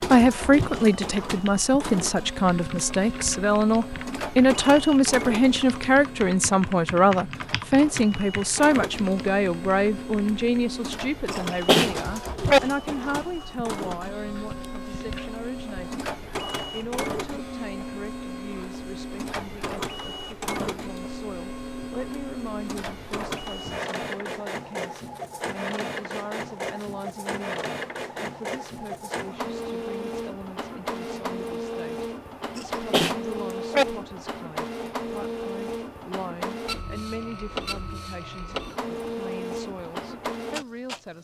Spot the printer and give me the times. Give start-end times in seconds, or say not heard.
0.0-41.0.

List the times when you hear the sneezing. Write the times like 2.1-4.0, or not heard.
11.3-12.6, 32.5-33.9.